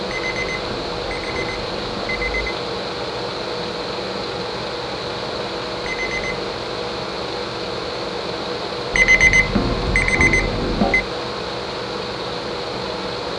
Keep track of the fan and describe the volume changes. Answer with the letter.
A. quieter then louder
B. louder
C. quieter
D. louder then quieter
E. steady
E.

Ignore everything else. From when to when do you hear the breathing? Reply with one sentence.
The breathing can't be heard in this clip.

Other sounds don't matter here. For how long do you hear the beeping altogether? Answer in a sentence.
You can hear the beeping for 5 seconds altogether.